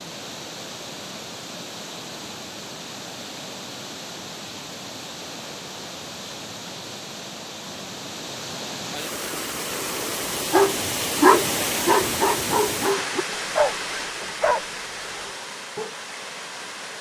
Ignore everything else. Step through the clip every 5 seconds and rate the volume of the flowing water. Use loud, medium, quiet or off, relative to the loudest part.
medium, medium, loud, medium.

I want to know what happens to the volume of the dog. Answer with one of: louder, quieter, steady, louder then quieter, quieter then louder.
quieter.